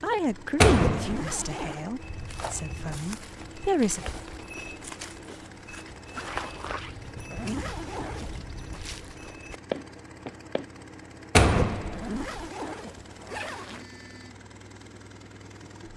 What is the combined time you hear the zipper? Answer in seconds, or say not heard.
4 s.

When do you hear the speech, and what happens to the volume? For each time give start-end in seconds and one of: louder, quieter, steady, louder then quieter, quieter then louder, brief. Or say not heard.
0.0-4.0 quieter.